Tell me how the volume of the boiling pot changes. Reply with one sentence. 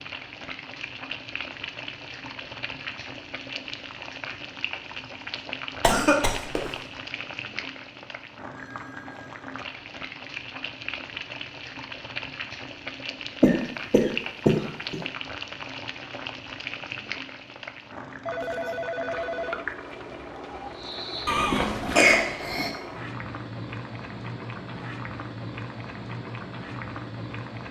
The loudness of the boiling pot stays about the same.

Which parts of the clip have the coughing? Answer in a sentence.
You can hear the coughing from 5.8 to 6.7 s, from 13.4 to 15.0 s and from 21.2 to 22.7 s.